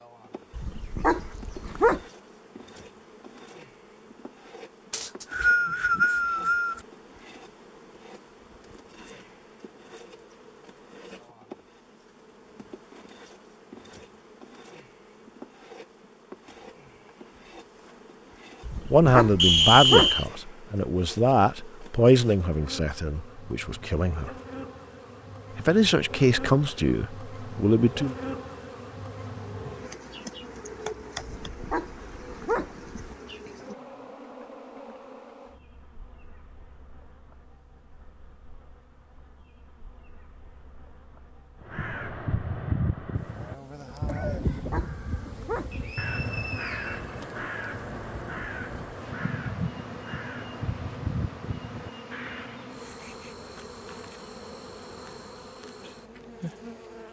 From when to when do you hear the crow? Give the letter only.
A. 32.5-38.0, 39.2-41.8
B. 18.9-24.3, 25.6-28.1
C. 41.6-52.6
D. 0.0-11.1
C.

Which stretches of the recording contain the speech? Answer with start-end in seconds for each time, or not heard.
18.9-24.3, 25.6-28.1.